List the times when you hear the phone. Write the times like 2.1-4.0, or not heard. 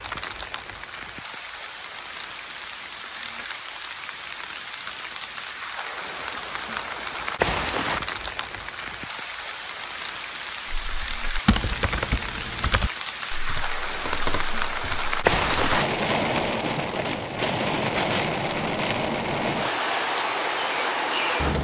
not heard.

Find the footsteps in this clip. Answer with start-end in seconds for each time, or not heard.
not heard.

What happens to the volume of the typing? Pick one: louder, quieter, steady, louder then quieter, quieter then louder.
quieter.